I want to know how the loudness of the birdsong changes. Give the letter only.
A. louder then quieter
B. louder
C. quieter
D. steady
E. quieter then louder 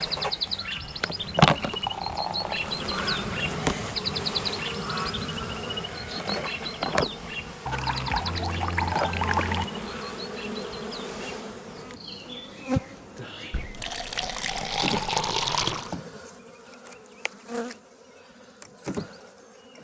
C.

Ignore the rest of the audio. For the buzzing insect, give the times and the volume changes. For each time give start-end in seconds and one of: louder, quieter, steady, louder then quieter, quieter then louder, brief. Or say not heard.
0.0-19.8 quieter.